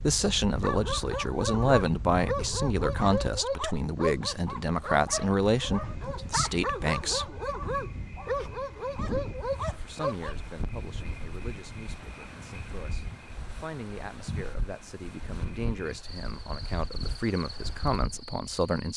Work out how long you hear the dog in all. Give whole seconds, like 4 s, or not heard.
10 s.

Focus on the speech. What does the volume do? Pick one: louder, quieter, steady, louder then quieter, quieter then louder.
quieter then louder.